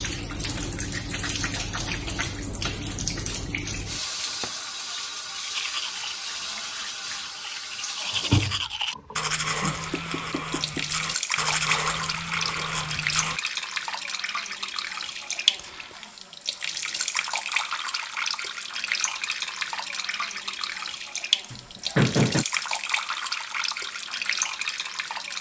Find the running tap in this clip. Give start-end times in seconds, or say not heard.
0.0-25.3.